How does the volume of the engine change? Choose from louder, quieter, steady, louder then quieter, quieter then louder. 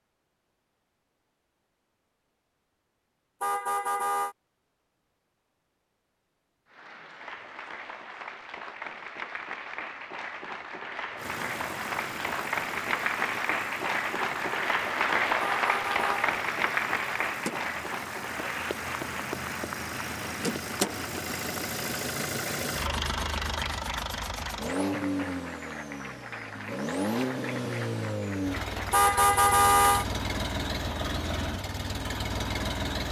louder.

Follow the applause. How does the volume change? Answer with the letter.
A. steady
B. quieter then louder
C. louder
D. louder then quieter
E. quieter
D.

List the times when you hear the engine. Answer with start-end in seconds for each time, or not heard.
11.2-33.0.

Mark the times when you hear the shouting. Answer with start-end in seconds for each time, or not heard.
not heard.